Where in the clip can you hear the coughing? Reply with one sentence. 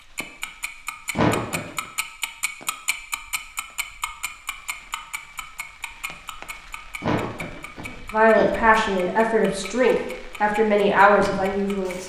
You can hear the coughing from 1.1 to 1.8 s and from 7.0 to 8.4 s.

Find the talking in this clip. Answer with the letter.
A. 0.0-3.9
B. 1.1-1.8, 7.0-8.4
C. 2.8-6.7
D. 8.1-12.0
D.